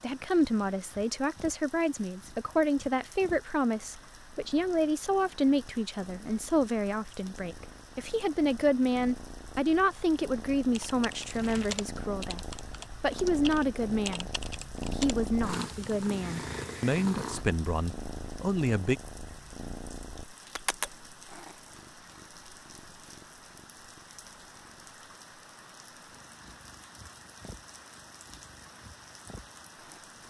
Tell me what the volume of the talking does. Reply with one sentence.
The loudness of the talking stays about the same.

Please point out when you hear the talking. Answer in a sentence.
The talking can be heard from 0.0 to 14.3 s and from 14.9 to 18.9 s.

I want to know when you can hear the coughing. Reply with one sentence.
You can't hear the coughing here.